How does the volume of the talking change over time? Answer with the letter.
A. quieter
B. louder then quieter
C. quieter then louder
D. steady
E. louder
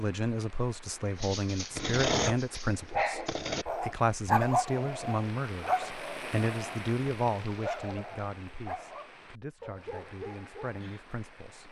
A.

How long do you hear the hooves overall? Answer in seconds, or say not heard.
not heard.